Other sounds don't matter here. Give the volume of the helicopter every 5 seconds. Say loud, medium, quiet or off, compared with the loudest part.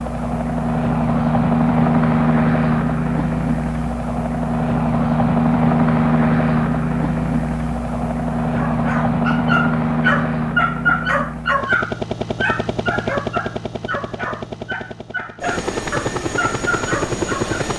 loud, loud, medium, medium.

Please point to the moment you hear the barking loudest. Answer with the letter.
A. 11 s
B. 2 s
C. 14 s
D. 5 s
A.